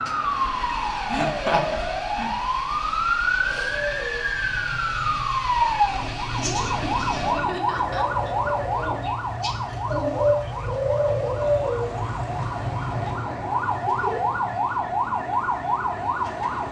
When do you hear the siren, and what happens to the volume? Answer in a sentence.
The siren can be heard from 0.0 to 16.6 s, getting quieter then louder.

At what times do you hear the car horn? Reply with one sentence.
You can't hear the car horn here.